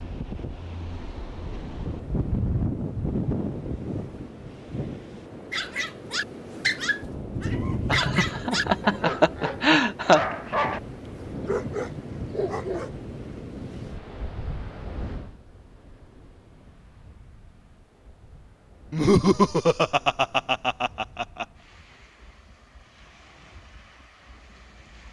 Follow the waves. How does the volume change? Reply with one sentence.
The loudness of the waves goes down.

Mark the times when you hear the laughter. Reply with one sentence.
You can hear the laughter from 7.8 to 10.2 s and from 18.9 to 21.4 s.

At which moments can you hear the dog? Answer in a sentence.
The dog can be heard from 5.5 to 12.9 s.